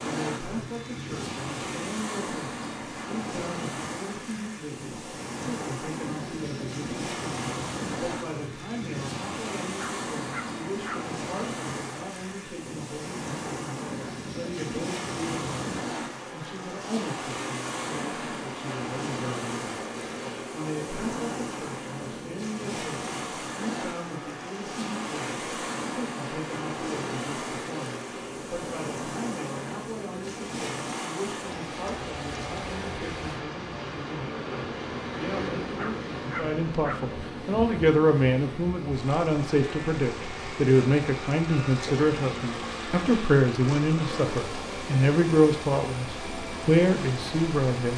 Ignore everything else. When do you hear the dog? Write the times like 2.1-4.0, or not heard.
9.8-11.0, 35.8-37.0.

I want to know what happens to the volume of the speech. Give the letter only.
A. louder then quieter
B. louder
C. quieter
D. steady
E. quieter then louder
B.